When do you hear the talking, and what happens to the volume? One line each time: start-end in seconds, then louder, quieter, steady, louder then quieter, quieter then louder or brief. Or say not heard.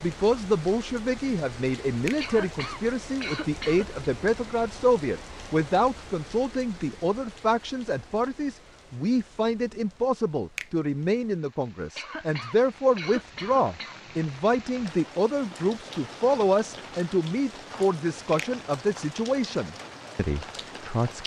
0.0-21.2 steady.